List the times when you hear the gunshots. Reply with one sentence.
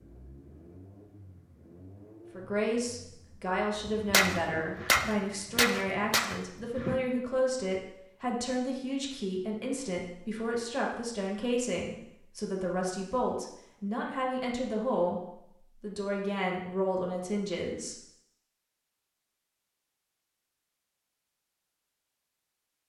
The gunshots can be heard from 4.1 to 7.0 s.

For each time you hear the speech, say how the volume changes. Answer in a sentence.
You can hear the speech from 2.3 to 17.9 s, at a steady volume.